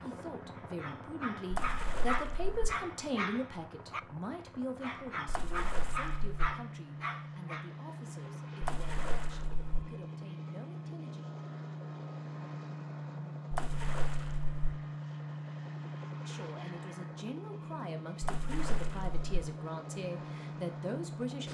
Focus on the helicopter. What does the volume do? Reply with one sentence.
The loudness of the helicopter goes up.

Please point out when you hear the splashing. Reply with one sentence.
The splashing can be heard from 1.5 to 2.6 s, from 5.2 to 6.3 s, from 8.6 to 9.8 s, from 13.5 to 14.7 s and from 18.2 to 19.2 s.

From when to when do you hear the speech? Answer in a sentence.
The speech can be heard from 0.0 to 11.2 s and from 16.2 to 21.4 s.